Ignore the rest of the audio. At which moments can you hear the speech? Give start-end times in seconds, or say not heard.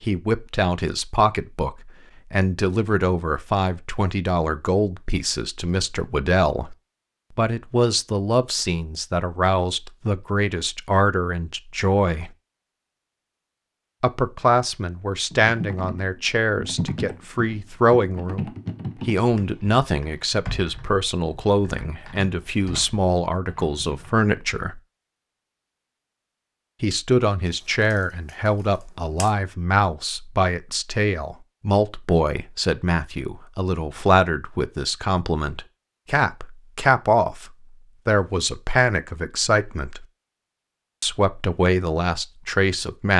0.0-6.8, 7.3-12.3, 14.0-24.8, 26.8-40.0, 41.0-43.1.